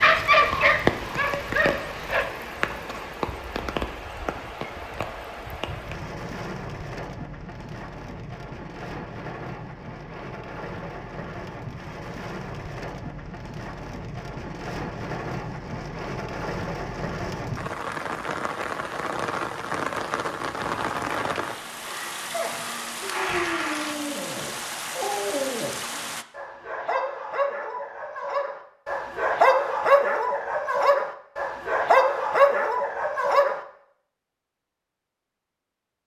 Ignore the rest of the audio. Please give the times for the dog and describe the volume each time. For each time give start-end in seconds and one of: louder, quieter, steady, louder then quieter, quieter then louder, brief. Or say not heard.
0.0-2.2 brief
22.3-33.6 louder.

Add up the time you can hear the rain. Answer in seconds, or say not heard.
26 s.